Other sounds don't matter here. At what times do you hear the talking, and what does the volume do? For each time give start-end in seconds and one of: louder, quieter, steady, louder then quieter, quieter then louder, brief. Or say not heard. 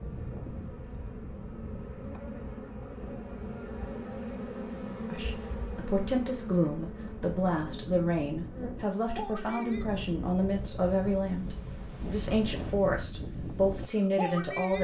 5.1-14.7 steady.